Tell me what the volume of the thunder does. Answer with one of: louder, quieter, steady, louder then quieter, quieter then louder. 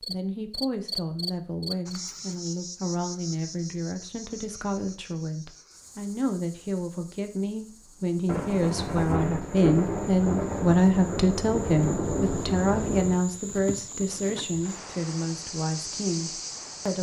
steady.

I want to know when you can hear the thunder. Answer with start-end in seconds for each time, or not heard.
8.2-13.2.